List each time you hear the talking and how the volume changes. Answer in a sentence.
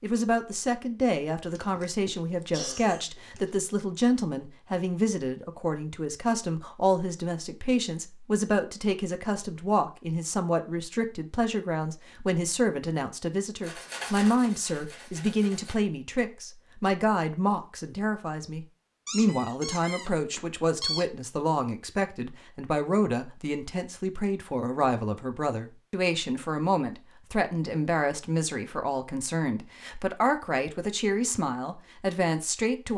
The talking can be heard from 0.0 to 32.9 s, at a steady volume.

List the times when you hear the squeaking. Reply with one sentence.
You can hear the squeaking from 19.1 to 21.1 s.